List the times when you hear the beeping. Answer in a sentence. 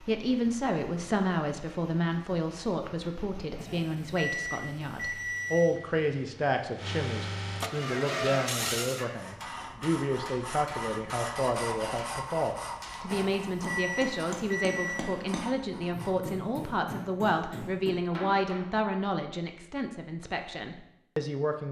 You can hear the beeping from 3.5 to 5.8 s and from 13.1 to 15.1 s.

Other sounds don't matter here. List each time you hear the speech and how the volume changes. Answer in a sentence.
You can hear the speech from 0.0 to 21.6 s, at a steady volume.